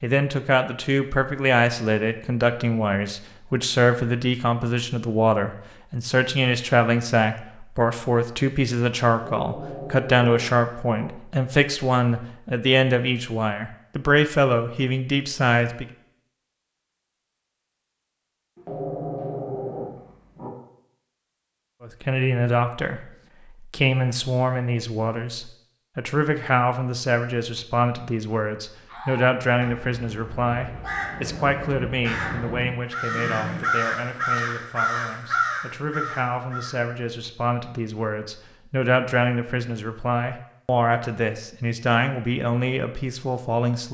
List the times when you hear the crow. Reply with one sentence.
The crow can be heard from 28.9 to 36.9 s.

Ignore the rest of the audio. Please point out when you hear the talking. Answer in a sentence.
The talking can be heard from 0.0 to 15.8 s and from 21.8 to 43.8 s.